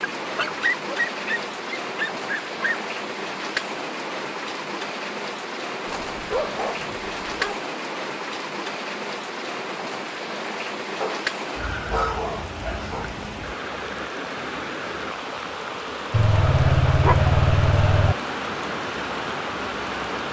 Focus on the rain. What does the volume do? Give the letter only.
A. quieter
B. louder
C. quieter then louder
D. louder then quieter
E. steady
E.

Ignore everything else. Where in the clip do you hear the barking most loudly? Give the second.
17 s.